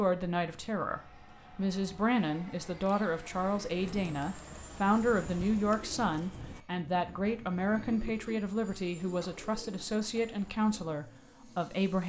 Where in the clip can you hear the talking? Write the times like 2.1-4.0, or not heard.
0.0-12.0.